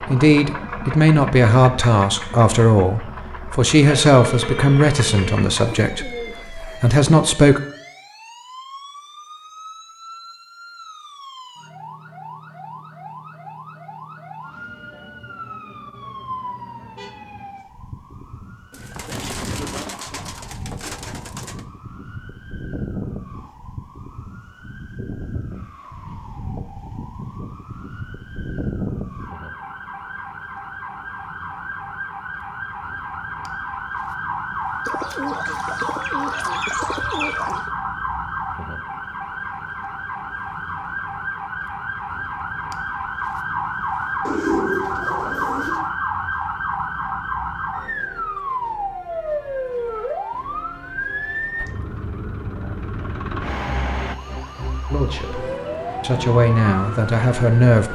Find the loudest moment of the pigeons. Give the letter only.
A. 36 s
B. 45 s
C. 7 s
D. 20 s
B.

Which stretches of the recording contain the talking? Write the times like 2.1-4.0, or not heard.
0.1-7.6, 54.9-57.8.